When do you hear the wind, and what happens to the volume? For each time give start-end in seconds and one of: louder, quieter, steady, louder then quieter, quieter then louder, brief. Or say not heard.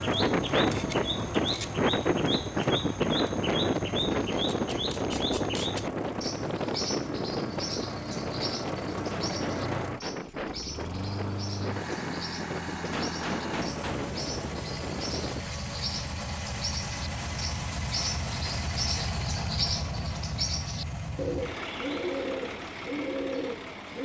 0.0-15.4 quieter.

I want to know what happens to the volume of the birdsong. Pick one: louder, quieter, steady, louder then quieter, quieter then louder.
quieter then louder.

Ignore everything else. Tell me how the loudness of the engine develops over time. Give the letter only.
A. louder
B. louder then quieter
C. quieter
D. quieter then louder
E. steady
E.